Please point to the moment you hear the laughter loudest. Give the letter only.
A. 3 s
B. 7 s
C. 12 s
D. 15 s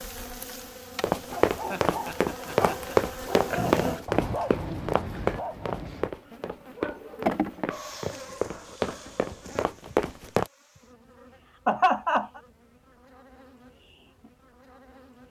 C.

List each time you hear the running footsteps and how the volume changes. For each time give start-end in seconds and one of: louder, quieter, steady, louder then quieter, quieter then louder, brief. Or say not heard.
1.0-10.5 quieter then louder.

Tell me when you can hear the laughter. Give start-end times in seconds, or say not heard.
1.5-3.1, 11.7-12.4.